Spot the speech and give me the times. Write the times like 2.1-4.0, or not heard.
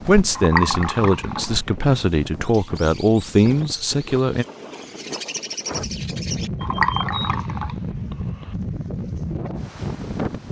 0.1-4.5.